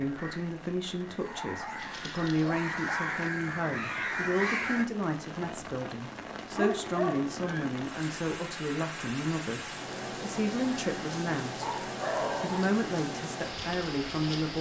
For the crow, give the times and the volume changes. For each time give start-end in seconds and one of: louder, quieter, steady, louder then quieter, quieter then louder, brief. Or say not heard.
0.0-4.8 louder.